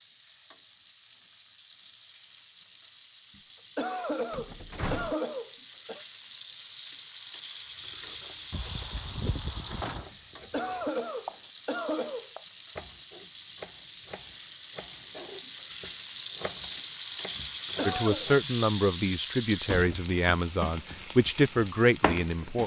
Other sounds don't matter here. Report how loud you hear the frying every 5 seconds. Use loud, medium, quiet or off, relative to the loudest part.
quiet, medium, medium, loud, loud.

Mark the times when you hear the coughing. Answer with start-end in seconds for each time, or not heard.
3.4-6.0, 10.1-12.3, 17.4-18.2.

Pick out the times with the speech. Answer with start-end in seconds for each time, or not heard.
17.9-22.6.